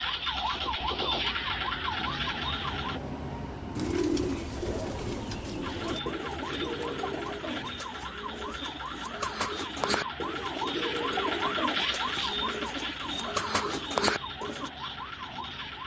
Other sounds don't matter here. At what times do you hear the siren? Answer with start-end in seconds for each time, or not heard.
0.0-3.0, 5.6-15.8.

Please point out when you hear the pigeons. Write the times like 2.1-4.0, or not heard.
3.8-14.7.